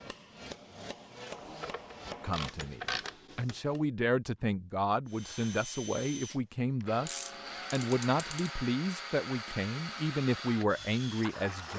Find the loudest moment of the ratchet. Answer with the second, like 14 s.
3 s.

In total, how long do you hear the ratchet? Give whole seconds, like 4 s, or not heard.
3 s.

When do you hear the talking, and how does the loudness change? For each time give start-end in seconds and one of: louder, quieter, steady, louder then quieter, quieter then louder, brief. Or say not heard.
2.2-11.7 steady.